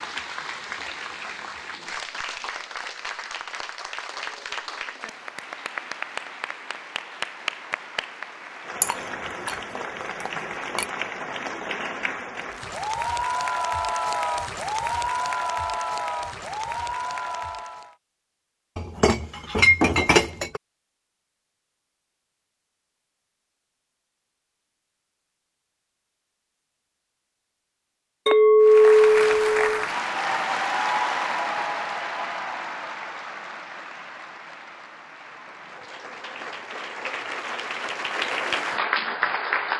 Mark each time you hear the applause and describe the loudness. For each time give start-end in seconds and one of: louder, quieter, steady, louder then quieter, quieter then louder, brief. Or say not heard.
0.0-17.9 louder
28.6-39.7 quieter then louder.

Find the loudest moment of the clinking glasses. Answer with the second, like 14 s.
29 s.